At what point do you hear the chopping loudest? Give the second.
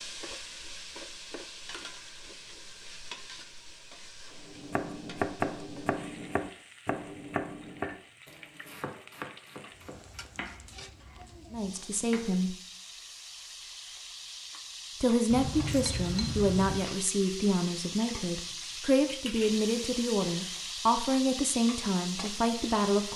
5 s.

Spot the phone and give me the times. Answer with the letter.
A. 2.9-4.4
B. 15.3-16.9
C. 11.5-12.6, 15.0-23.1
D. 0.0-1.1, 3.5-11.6
B.